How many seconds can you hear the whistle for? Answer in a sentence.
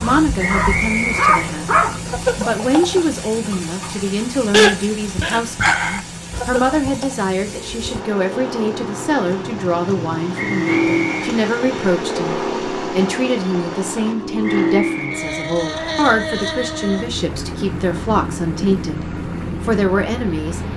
You can hear the whistle for 4 seconds altogether.